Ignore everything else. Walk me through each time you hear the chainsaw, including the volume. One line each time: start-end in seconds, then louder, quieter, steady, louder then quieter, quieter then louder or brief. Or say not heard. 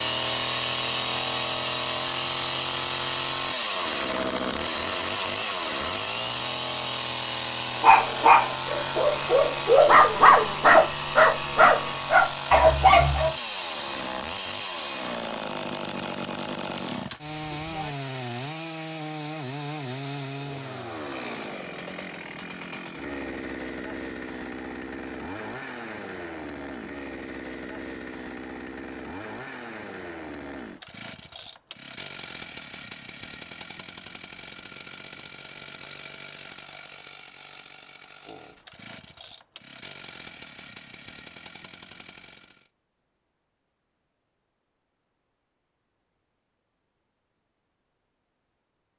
0.0-42.7 quieter.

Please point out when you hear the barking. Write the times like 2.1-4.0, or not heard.
7.8-13.3.